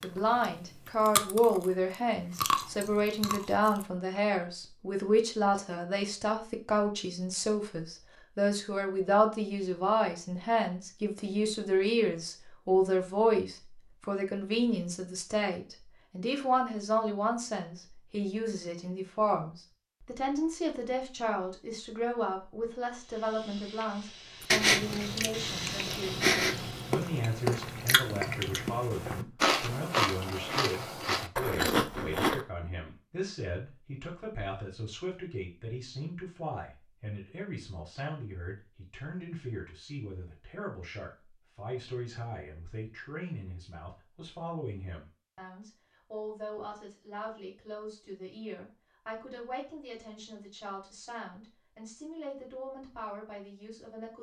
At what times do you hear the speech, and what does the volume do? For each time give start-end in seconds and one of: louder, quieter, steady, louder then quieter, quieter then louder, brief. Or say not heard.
0.0-54.1 quieter.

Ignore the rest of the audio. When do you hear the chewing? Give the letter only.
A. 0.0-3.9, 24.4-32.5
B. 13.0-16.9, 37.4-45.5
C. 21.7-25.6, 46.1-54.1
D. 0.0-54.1
A.